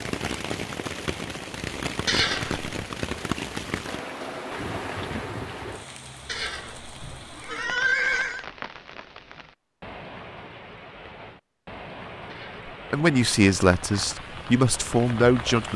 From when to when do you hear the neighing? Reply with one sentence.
The neighing can be heard from 2.0 to 2.7 s, from 6.2 to 8.4 s and from 12.2 to 12.7 s.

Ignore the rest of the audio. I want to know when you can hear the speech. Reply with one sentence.
The speech can be heard from 12.9 to 15.7 s.